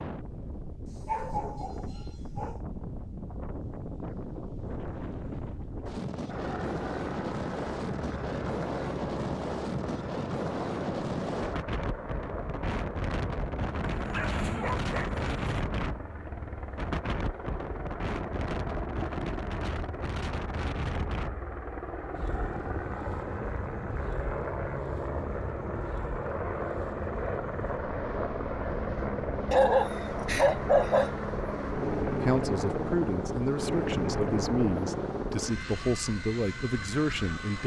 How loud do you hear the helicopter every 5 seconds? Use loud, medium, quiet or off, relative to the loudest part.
off, medium, medium, medium, medium, loud, loud, medium.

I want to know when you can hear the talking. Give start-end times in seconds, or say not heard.
32.2-37.6.